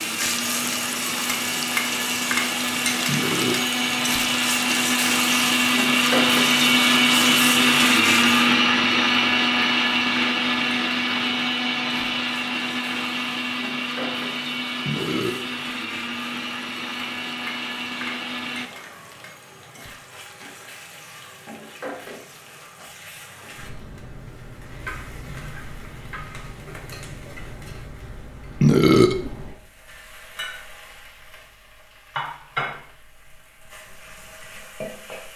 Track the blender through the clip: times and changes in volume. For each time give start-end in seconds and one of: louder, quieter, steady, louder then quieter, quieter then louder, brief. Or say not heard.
0.0-18.7 louder then quieter.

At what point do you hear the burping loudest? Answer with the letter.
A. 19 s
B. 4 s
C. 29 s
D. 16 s
C.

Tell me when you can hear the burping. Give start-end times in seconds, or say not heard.
3.0-3.6, 14.8-15.4, 28.6-29.2.